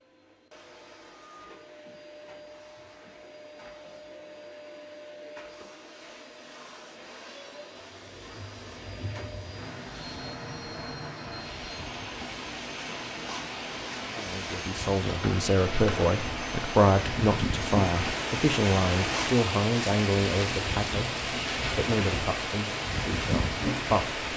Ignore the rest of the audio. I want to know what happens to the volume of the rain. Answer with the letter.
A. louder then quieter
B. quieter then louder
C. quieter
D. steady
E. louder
E.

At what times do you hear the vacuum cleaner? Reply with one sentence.
You can hear the vacuum cleaner from 0.0 to 19.4 s.